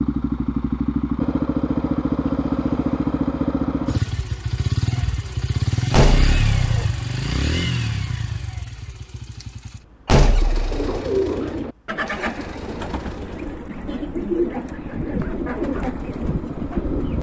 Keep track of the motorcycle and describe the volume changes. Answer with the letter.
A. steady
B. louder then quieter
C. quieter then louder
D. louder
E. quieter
E.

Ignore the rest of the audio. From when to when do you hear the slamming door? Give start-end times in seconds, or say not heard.
5.9-6.8, 10.1-11.0.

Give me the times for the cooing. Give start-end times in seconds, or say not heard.
10.6-17.1.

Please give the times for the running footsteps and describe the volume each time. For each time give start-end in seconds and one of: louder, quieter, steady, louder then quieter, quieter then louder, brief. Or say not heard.
not heard.